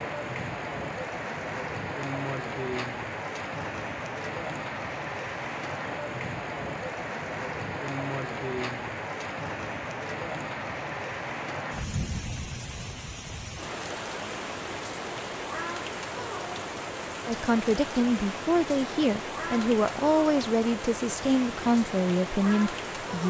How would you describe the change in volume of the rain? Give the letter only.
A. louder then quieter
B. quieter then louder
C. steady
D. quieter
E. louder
C.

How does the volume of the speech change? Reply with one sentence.
The loudness of the speech stays about the same.